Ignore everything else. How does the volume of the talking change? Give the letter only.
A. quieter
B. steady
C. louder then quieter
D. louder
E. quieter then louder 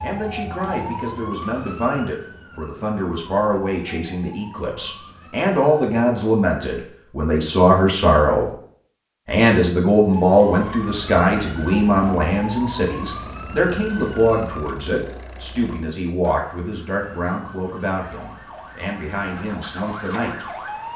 C.